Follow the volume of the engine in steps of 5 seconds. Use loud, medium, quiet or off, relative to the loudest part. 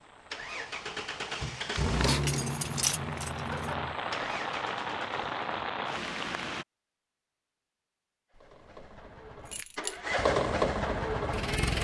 medium, quiet, loud.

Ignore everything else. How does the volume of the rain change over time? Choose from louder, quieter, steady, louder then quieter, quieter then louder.
louder.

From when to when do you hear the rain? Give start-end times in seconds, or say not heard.
0.0-6.7.